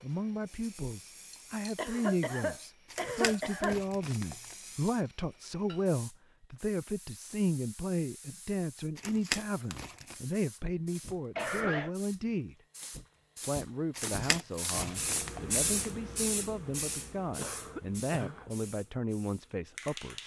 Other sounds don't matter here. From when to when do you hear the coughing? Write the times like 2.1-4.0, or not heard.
1.8-3.8, 11.3-11.9, 17.4-18.4.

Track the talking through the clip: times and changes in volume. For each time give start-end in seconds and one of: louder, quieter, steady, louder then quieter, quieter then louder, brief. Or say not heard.
0.0-12.6 steady
13.4-20.2 steady.